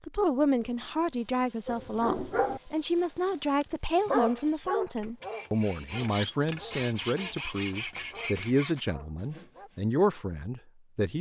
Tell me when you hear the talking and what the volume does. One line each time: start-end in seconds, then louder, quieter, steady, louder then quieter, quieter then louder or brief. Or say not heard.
0.1-11.1 steady.